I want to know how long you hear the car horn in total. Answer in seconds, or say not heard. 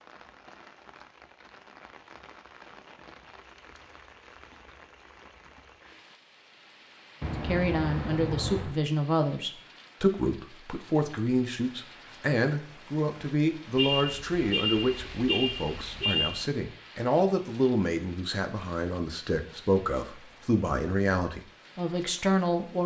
4 s.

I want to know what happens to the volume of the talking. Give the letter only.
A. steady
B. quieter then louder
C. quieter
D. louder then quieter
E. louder
A.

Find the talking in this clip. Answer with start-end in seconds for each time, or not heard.
7.4-22.8.